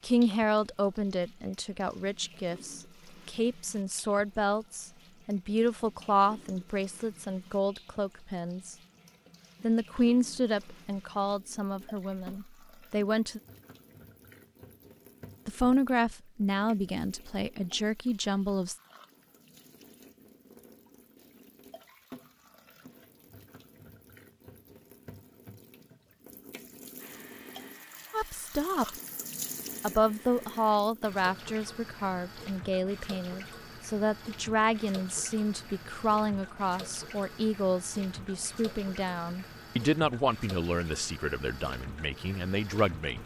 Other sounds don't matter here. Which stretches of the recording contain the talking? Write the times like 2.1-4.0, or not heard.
0.0-8.8, 9.6-13.4, 15.4-18.8, 28.1-28.9, 29.8-43.2.